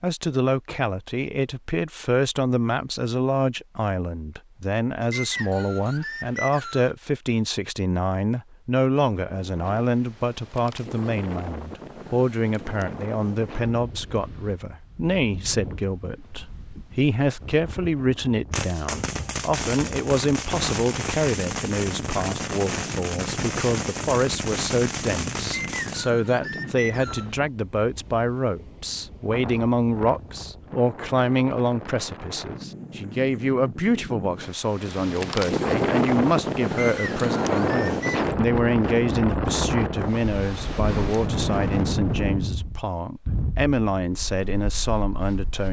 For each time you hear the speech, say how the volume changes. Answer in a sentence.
You can hear the speech from 0.0 to 45.6 s, at a steady volume.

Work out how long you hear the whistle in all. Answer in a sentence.
The whistle can be heard for 5 seconds in total.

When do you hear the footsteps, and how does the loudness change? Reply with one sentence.
The footsteps can't be heard in this clip.